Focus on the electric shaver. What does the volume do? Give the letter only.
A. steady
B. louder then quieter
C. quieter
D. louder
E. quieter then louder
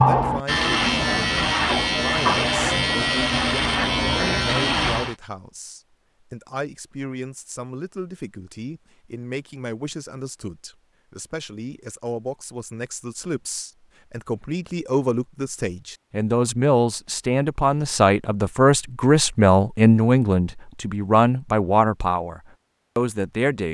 A.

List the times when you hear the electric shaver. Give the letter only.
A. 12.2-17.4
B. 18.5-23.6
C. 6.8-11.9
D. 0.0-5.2
D.